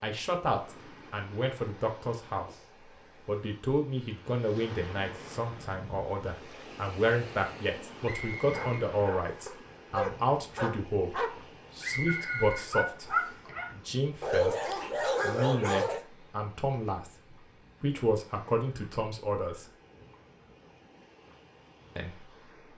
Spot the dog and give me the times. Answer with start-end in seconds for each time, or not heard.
8.4-16.0.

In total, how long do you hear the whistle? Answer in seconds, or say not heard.
3 s.